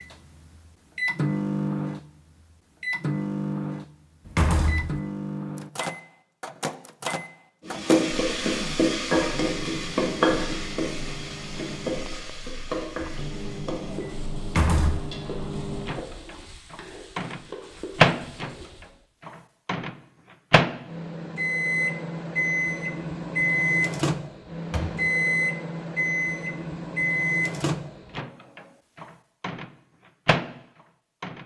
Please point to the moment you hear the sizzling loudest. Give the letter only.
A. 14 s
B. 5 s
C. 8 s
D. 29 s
C.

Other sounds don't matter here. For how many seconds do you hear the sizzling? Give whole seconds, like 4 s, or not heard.
11 s.